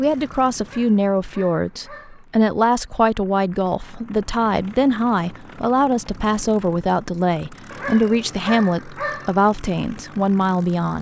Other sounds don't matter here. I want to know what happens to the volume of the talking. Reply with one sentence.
The volume of the talking stays about the same.